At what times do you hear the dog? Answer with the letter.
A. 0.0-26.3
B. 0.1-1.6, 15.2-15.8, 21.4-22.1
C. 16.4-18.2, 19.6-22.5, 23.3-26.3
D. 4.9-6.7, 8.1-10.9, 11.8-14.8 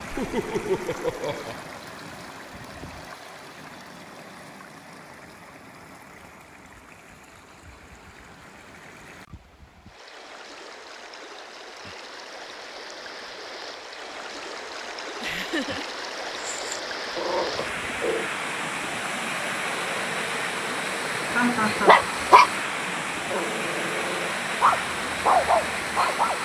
C.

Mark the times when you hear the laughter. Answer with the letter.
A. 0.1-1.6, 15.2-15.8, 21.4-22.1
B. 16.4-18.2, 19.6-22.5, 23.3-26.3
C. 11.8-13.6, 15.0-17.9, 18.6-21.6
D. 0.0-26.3
A.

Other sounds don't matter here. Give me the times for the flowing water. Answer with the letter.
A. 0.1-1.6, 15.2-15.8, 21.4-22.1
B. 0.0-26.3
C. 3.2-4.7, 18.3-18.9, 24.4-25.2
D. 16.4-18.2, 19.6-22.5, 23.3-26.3
B.